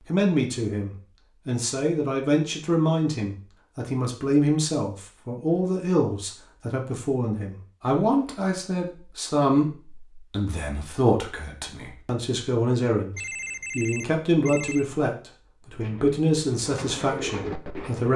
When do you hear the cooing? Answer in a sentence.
The cooing can be heard from 15.7 to 18.1 s.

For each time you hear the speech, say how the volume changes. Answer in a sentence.
The speech can be heard from 0.1 to 18.1 s, at a steady volume.